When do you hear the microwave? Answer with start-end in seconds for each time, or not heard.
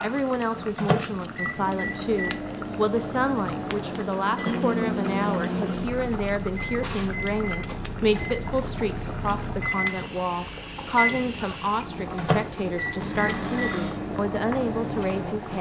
0.0-15.5.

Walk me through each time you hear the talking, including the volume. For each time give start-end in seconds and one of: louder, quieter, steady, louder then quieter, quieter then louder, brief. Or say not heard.
0.0-15.5 steady.